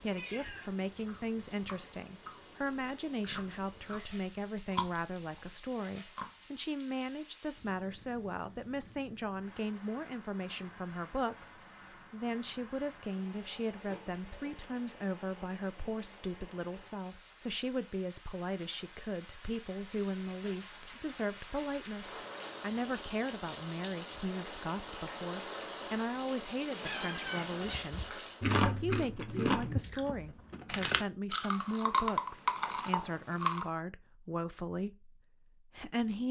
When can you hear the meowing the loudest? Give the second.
27 s.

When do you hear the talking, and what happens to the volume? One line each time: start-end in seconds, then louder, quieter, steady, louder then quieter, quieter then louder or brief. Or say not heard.
0.0-36.2 steady.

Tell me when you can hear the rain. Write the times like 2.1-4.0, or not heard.
0.0-28.5.